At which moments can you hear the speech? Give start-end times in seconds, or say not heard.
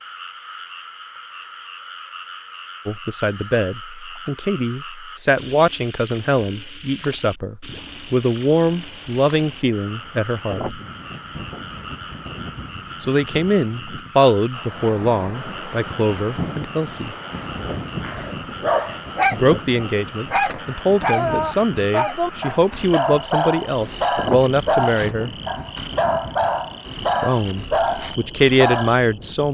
2.9-10.8, 13.0-17.1, 19.3-25.3, 27.2-29.4.